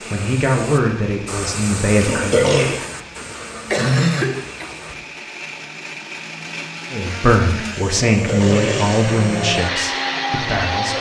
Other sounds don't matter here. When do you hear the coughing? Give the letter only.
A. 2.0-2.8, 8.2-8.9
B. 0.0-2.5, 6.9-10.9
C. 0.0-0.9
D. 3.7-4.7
D.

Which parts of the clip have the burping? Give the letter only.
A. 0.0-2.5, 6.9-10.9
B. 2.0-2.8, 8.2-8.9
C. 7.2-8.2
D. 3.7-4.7
B.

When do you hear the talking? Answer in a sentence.
You can hear the talking from 0.0 to 2.5 s and from 6.9 to 10.9 s.